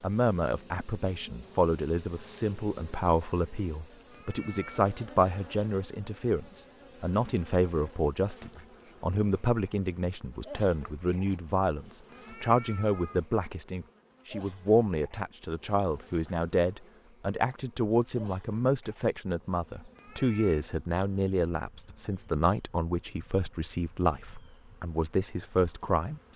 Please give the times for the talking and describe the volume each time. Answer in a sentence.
The talking can be heard from 0.0 to 26.3 s, at a steady volume.